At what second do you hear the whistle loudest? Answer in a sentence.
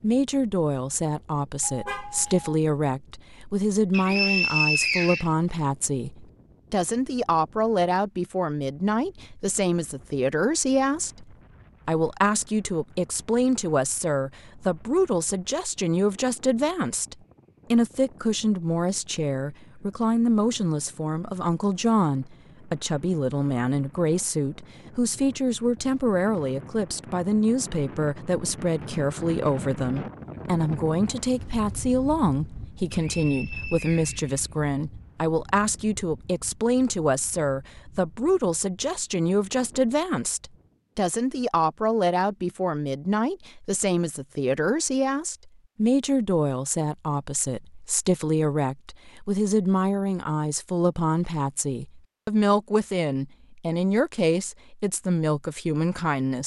The volume of the whistle peaks at 5 seconds.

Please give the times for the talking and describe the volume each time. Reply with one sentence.
You can hear the talking from 0.0 to 56.4 s, at a steady volume.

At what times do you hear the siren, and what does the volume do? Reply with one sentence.
The siren can't be heard in this clip.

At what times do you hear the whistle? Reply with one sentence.
The whistle can be heard from 3.9 to 5.3 s and from 32.9 to 34.9 s.